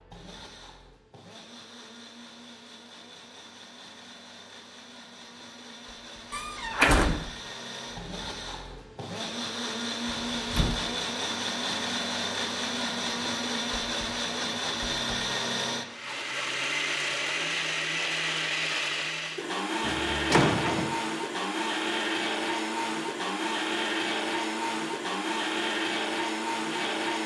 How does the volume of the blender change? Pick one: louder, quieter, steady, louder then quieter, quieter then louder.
louder.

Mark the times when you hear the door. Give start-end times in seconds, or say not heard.
6.3-7.2, 10.3-10.8, 19.8-20.9.